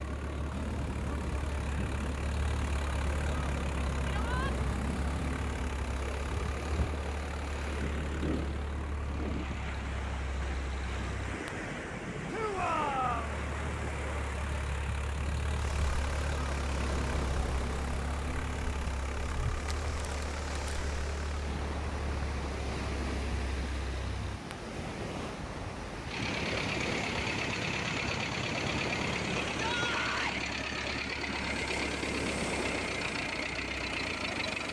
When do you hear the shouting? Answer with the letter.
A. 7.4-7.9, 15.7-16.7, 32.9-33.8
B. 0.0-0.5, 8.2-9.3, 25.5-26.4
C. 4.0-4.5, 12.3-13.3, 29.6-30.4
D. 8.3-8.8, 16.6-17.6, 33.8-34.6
C.